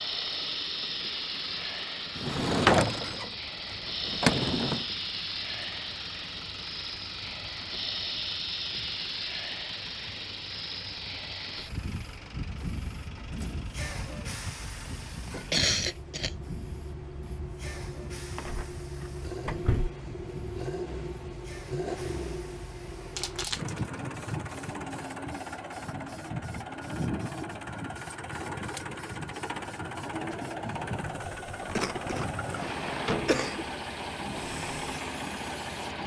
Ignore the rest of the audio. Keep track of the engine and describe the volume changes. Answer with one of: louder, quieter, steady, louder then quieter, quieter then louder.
louder.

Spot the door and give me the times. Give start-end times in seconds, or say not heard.
2.1-3.3, 4.0-4.8, 18.4-19.9, 31.6-33.5.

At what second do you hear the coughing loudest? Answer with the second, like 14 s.
16 s.